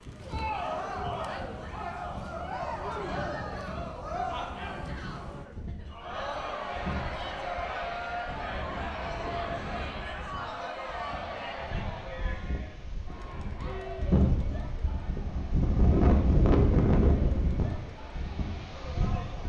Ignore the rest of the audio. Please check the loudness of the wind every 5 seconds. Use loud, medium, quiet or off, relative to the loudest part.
quiet, quiet, medium, loud.